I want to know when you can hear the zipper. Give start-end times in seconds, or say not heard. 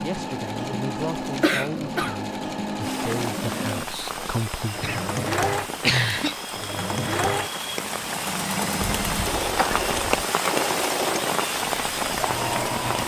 not heard.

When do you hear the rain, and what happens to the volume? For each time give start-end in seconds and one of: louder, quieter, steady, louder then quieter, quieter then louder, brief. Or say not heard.
2.8-13.0 louder.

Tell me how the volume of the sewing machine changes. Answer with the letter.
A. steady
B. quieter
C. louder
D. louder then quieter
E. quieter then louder
A.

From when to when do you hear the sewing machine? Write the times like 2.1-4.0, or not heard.
0.0-13.0.